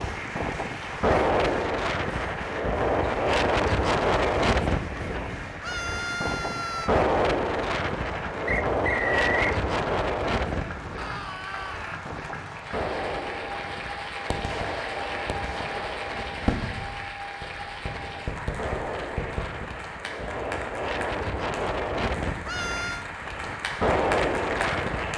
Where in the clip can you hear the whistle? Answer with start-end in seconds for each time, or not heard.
8.4-9.6.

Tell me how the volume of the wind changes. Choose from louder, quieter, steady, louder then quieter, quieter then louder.
quieter then louder.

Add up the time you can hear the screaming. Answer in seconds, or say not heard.
3 s.